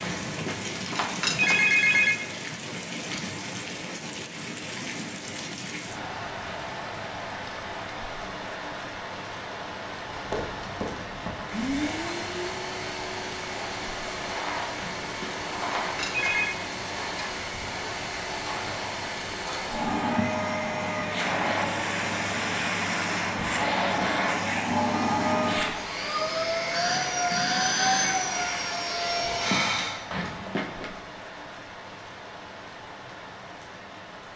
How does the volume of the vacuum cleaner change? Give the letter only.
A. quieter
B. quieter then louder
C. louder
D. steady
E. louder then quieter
C.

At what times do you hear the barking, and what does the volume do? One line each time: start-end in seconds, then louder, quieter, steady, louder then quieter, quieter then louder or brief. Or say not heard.
not heard.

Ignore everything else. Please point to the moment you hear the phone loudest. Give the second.
2 s.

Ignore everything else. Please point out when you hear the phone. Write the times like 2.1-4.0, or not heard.
0.0-2.2, 14.8-16.6, 30.1-31.0.